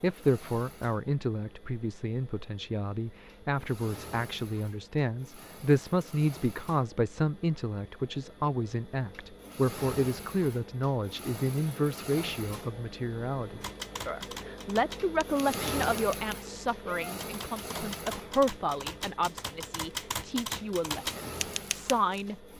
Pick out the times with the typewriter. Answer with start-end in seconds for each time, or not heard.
13.6-22.2.